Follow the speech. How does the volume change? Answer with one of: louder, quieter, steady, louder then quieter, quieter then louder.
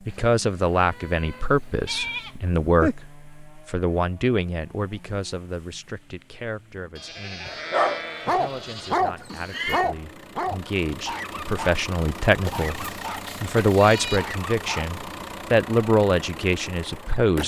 quieter then louder.